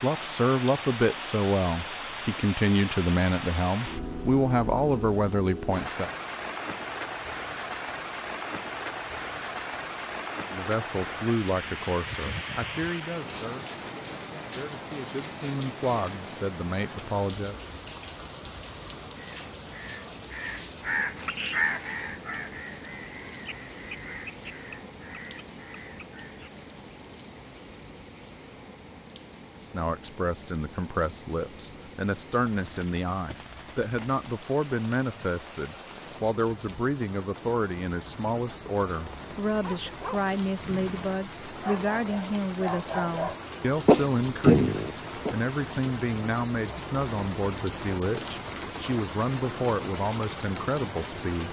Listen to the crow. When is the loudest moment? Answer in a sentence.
The loudest moment of the crow is at 22 seconds.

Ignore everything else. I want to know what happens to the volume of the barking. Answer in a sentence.
The volume of the barking goes up.